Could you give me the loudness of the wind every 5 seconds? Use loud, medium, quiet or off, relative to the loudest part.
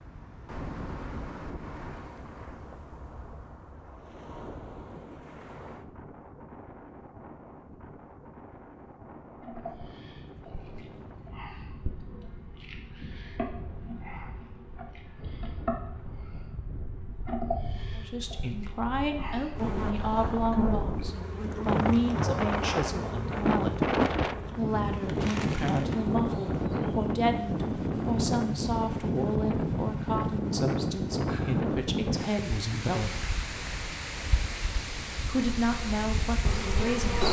quiet, quiet, quiet, quiet, loud, loud, loud, medium.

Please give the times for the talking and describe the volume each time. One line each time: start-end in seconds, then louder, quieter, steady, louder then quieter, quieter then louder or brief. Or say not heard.
17.9-33.4 steady
35.2-37.2 brief.